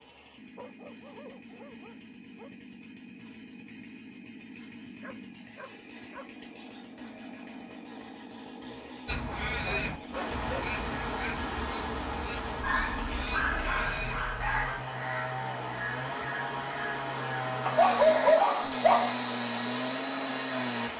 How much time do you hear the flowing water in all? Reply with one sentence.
You can hear the flowing water for 11 seconds altogether.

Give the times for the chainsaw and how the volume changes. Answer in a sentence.
You can hear the chainsaw from 0.0 to 20.9 s, getting louder.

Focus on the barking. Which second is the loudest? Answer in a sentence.
The volume of the barking peaks at 18 seconds.